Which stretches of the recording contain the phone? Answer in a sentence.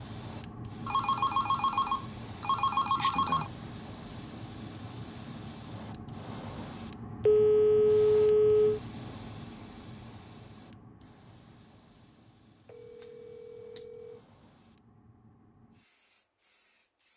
You can hear the phone from 0.8 to 3.5 s, from 7.2 to 8.8 s and from 12.7 to 14.2 s.